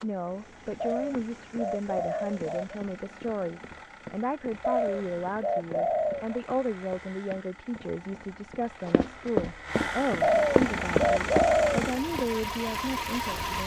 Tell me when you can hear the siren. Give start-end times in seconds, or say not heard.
not heard.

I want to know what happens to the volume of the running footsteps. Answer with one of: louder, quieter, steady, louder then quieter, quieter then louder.
louder.